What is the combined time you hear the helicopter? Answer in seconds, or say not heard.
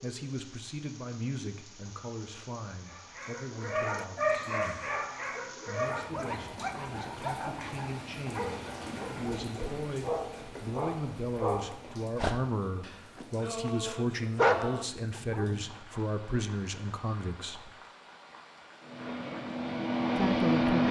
2 s.